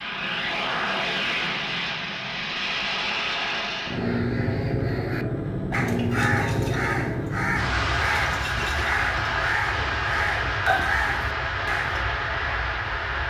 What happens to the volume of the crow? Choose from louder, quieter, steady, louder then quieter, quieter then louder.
louder.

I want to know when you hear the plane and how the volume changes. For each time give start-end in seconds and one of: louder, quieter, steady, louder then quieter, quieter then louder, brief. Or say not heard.
0.0-13.2 steady.